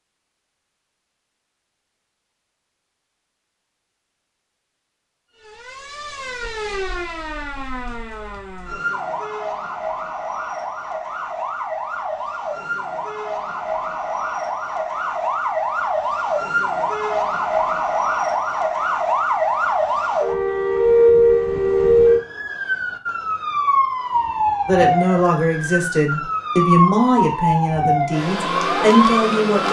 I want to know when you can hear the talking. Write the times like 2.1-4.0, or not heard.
24.6-29.6.